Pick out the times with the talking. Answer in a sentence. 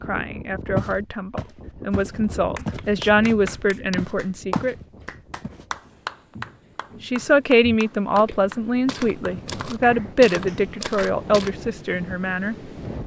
You can hear the talking from 0.0 to 4.8 s and from 7.0 to 12.6 s.